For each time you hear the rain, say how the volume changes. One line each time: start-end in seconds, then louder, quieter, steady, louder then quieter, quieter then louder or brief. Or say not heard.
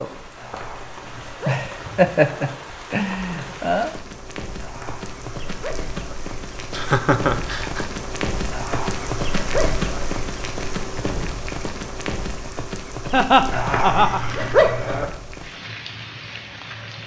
0.0-17.0 louder then quieter.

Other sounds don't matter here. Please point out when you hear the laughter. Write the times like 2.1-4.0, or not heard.
1.4-3.9, 6.7-7.8, 13.1-14.2.